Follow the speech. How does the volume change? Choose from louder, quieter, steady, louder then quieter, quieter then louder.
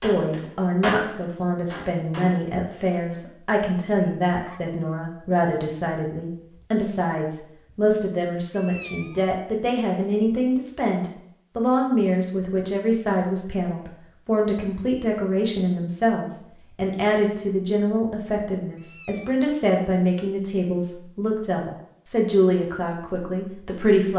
steady.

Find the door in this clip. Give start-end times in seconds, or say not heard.
not heard.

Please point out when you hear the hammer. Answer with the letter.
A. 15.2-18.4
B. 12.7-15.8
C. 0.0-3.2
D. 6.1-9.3
C.